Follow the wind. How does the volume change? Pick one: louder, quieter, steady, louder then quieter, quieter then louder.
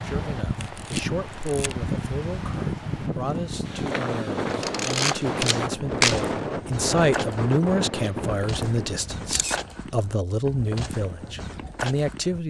steady.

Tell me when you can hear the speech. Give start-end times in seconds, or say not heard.
0.0-12.4.